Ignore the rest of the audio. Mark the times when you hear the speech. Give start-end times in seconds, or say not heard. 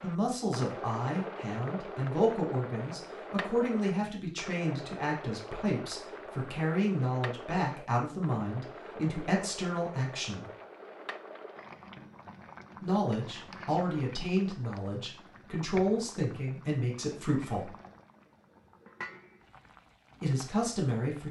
0.0-10.4, 12.8-17.8, 20.2-21.2.